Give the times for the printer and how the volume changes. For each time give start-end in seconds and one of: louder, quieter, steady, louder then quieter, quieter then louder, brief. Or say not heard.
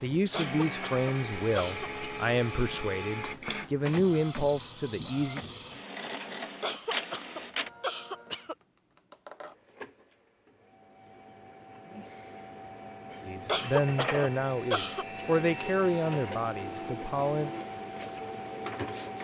0.0-19.1 quieter then louder.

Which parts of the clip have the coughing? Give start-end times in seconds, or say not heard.
0.3-2.0, 6.6-8.6, 13.4-15.2.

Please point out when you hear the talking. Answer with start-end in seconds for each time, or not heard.
0.0-5.4, 13.2-17.5.